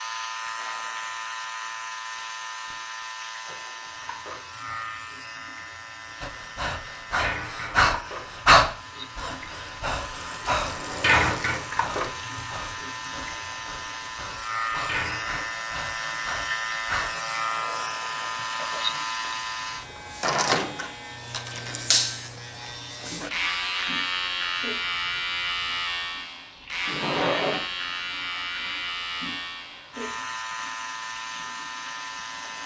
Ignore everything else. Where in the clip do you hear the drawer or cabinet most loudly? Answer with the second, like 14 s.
27 s.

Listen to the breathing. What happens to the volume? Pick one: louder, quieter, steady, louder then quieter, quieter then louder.
quieter.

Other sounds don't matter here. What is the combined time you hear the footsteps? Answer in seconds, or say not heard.
not heard.